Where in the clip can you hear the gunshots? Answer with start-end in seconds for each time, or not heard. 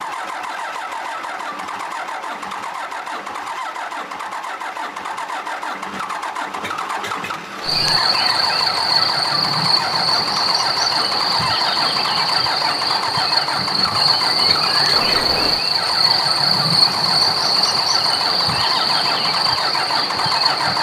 not heard.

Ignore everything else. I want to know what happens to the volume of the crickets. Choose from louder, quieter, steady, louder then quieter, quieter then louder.
steady.